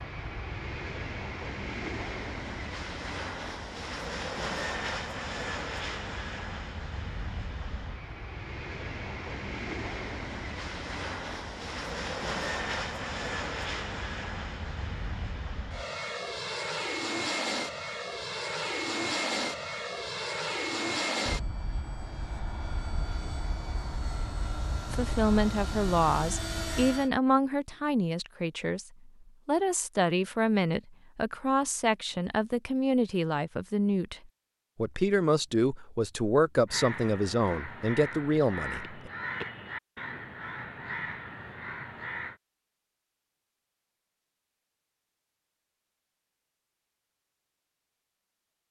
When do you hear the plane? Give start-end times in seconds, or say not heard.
0.0-27.1.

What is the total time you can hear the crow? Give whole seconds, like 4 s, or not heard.
6 s.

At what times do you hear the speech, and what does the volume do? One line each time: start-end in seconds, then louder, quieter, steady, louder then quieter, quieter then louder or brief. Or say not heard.
24.9-39.1 steady.